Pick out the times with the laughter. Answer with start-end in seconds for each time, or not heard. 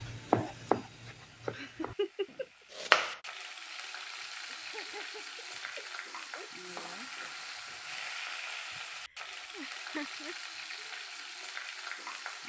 1.5-2.5, 4.5-6.5, 8.8-10.3.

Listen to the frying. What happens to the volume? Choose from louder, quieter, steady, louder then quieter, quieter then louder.
louder.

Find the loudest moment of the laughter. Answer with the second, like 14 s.
2 s.